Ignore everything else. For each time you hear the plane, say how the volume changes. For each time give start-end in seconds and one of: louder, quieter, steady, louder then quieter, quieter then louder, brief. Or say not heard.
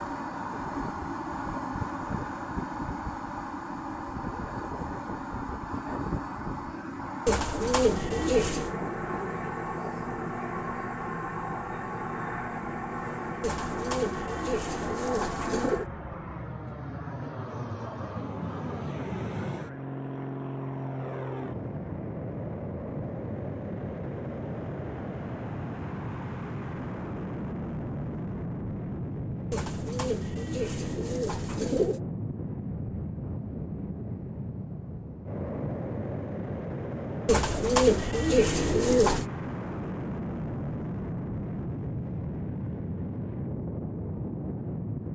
0.0-45.1 steady.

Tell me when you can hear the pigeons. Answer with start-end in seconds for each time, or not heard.
7.2-8.8, 13.4-15.8, 29.5-32.0, 37.2-39.2.